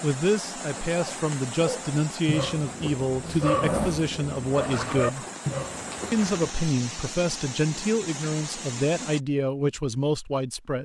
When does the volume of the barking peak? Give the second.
4 s.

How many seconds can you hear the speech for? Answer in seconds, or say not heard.
10 s.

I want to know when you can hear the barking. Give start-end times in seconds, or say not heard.
0.7-6.2.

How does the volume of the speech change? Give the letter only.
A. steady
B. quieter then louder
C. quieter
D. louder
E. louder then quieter
A.